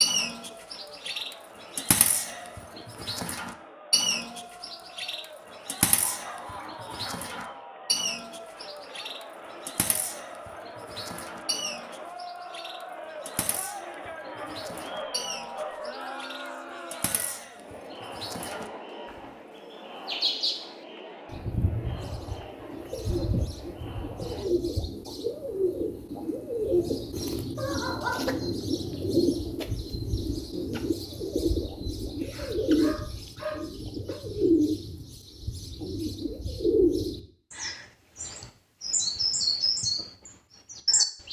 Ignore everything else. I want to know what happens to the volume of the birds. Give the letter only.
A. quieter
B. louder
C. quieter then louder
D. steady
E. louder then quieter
C.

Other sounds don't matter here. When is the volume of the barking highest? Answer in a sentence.
The volume of the barking peaks at 28 seconds.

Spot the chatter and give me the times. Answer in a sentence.
You can hear the chatter from 0.1 to 24.6 s.